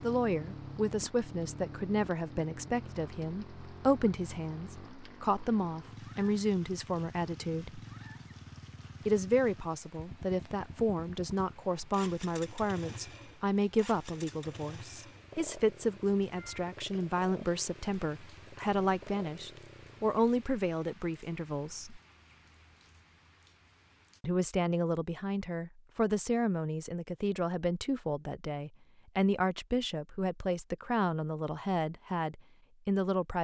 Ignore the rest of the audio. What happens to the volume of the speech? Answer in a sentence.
The volume of the speech stays about the same.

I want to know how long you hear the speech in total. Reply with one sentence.
You can hear the speech for 30 seconds altogether.